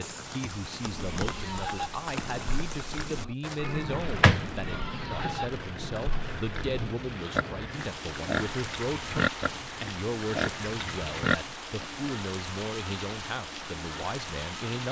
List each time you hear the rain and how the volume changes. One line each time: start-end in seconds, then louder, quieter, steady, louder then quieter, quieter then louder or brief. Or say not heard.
0.0-14.8 steady.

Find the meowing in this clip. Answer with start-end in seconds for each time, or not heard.
3.4-5.3.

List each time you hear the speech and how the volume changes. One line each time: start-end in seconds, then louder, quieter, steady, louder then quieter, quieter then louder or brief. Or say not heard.
0.0-14.8 steady.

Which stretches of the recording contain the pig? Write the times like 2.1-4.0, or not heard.
0.8-12.1.